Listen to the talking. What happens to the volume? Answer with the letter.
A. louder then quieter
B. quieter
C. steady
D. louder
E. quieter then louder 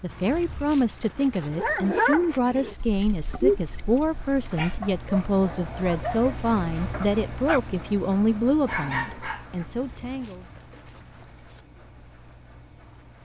C.